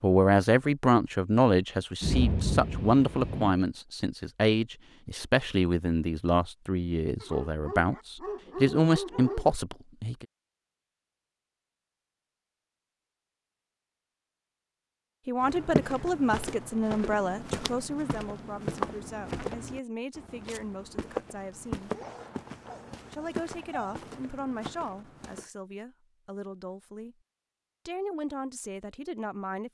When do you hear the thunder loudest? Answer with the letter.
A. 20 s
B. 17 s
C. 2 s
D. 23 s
C.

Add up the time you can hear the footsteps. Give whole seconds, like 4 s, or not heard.
10 s.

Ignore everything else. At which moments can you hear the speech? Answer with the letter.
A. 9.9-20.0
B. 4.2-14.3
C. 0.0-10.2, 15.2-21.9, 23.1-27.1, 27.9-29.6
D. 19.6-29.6
C.